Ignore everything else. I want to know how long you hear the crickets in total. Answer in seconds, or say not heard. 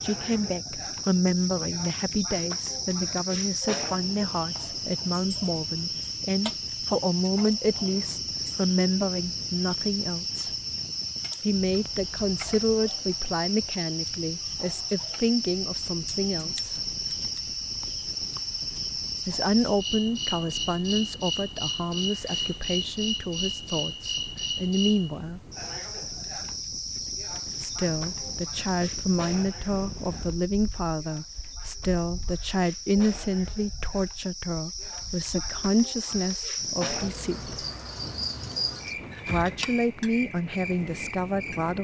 42 s.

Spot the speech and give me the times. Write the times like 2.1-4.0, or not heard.
0.0-10.5, 11.4-16.8, 19.2-25.4, 27.6-37.5, 39.2-41.7.